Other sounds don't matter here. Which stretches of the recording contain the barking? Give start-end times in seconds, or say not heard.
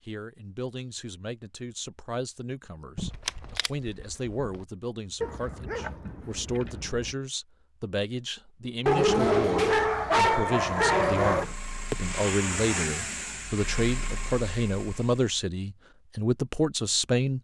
5.2-7.2, 8.8-11.4.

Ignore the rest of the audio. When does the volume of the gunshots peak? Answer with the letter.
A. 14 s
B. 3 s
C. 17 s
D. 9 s
B.